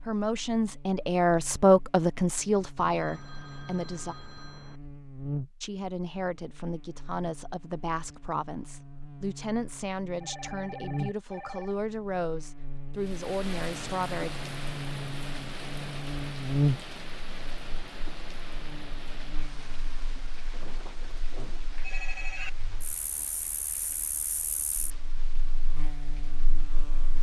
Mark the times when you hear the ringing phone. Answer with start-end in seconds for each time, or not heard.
2.8-4.8, 10.2-11.8, 20.5-22.5.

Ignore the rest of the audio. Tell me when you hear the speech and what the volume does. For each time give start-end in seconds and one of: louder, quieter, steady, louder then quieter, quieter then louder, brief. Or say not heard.
0.0-4.2 louder then quieter
5.6-14.3 steady.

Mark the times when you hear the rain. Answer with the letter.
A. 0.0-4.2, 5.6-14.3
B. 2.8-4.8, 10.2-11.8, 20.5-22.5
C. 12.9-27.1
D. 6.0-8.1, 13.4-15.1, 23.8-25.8
C.